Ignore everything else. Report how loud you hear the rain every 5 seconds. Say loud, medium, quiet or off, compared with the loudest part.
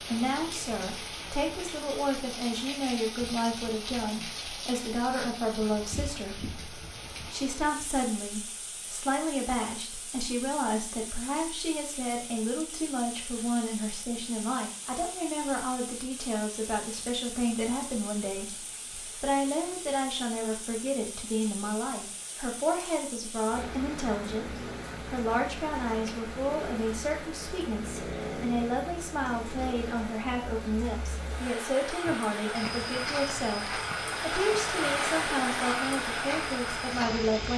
medium, medium, quiet, quiet, medium, medium, loud, loud.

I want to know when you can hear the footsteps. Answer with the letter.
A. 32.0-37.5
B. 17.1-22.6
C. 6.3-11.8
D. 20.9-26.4
A.